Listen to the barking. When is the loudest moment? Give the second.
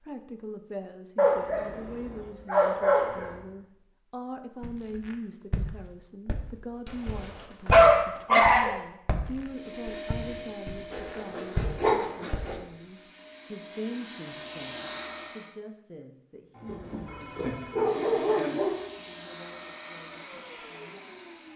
8 s.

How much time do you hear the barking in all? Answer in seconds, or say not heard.
8 s.